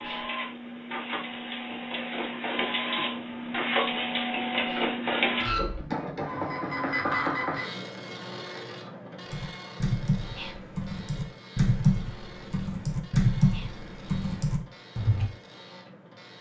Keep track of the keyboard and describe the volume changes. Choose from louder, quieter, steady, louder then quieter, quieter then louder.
louder then quieter.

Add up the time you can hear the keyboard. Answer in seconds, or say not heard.
6 s.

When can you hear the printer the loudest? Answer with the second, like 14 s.
5 s.